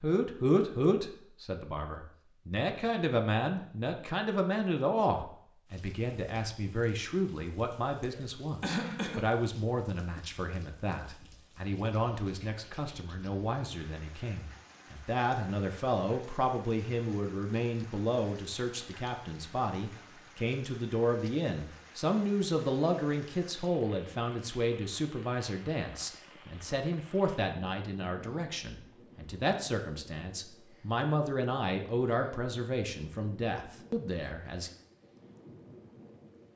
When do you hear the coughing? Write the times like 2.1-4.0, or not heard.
8.0-9.3.